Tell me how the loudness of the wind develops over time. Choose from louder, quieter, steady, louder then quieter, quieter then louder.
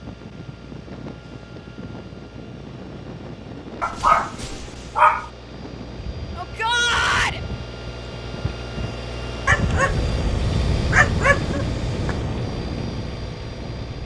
louder.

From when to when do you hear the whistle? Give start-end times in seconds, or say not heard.
not heard.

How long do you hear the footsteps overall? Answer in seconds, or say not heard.
not heard.